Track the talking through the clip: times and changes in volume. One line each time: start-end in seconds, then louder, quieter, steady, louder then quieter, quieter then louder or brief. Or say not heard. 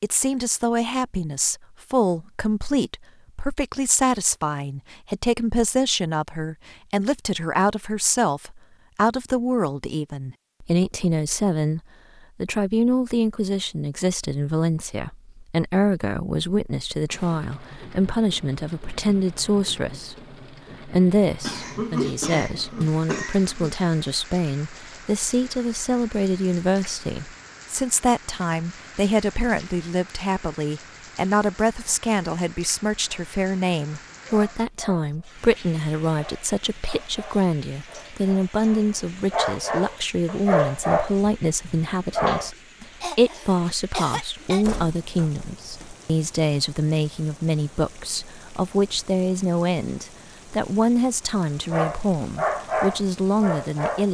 0.0-11.8 steady
12.4-54.0 steady.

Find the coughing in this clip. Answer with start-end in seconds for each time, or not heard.
21.4-23.8, 43.0-44.6.